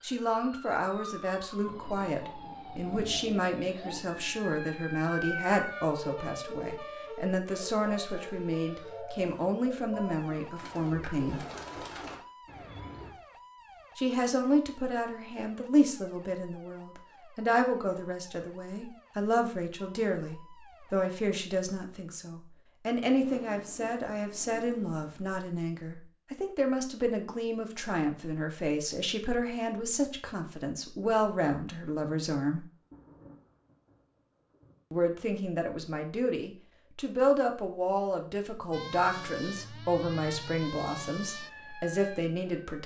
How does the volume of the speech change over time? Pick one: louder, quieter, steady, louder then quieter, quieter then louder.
steady.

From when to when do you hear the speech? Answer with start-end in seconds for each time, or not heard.
0.0-11.4, 13.9-32.6, 34.9-42.8.